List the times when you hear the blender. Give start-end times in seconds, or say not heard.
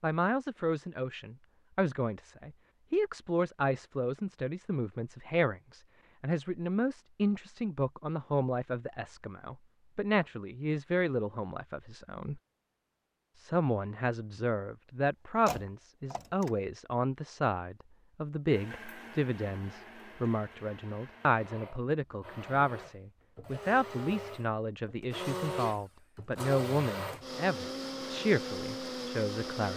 18.4-29.7.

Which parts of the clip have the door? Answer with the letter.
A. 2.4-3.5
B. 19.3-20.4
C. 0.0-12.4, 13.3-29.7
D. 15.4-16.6
D.